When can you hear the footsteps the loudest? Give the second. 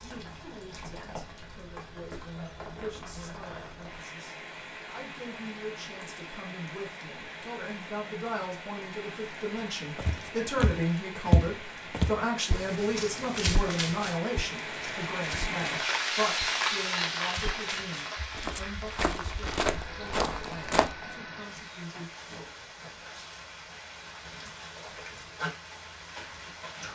11 s.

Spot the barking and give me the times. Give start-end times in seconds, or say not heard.
not heard.